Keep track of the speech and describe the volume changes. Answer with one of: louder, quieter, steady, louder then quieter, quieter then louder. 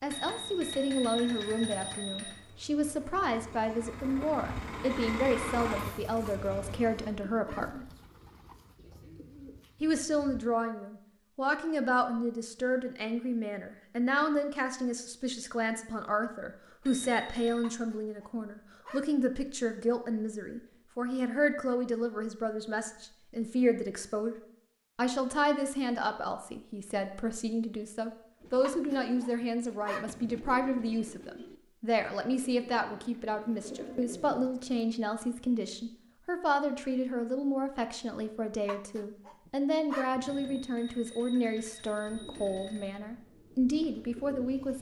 steady.